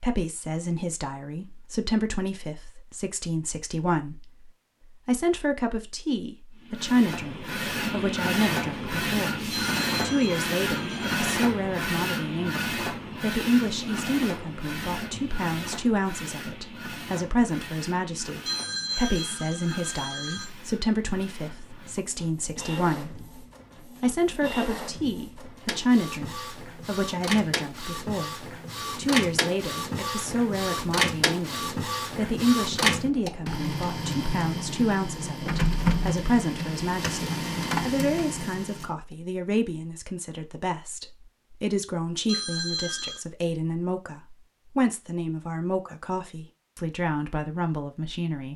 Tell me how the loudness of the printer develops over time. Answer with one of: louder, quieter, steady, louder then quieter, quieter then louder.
quieter then louder.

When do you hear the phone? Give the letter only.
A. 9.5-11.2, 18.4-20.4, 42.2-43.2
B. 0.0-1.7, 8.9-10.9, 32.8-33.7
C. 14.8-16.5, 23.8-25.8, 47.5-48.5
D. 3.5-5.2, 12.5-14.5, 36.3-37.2
A.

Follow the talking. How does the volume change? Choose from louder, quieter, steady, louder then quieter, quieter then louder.
steady.